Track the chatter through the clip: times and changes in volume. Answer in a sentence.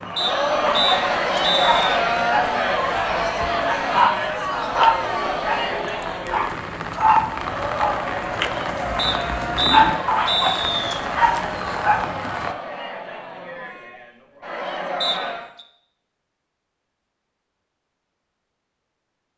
You can hear the chatter from 0.0 to 15.6 s, getting quieter.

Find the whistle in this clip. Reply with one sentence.
You can hear the whistle from 0.1 to 1.9 s, from 8.9 to 11.0 s and from 15.0 to 15.7 s.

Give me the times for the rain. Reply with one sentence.
The rain can be heard from 0.0 to 12.6 s.